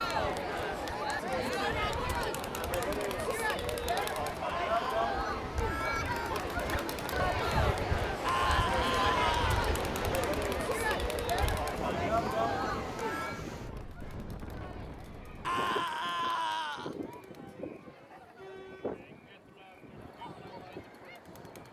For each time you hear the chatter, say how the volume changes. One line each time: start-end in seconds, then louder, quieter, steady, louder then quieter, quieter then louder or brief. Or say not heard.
0.0-21.6 quieter.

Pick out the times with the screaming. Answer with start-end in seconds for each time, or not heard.
4.5-5.0, 8.2-9.7, 15.4-16.9.